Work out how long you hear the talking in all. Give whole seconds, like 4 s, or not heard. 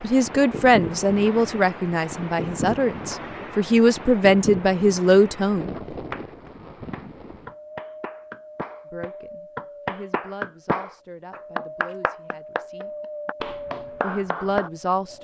11 s.